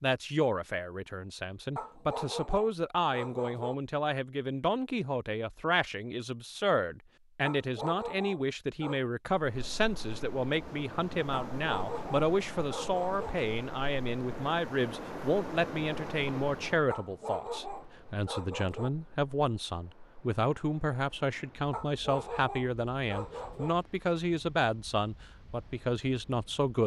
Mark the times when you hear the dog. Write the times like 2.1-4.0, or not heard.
1.8-3.8, 7.4-9.1, 11.6-13.3, 16.9-18.9, 21.7-23.8.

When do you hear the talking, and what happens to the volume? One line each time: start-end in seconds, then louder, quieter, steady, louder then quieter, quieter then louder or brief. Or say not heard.
0.0-26.8 steady.